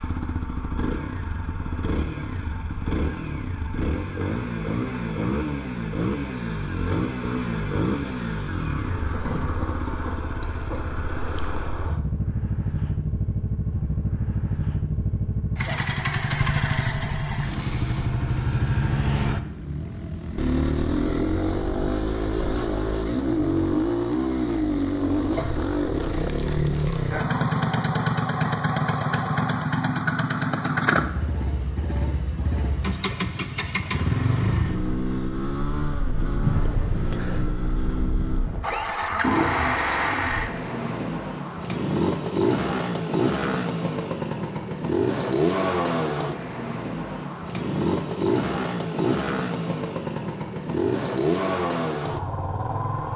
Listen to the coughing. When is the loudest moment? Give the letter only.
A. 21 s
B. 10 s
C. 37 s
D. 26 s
C.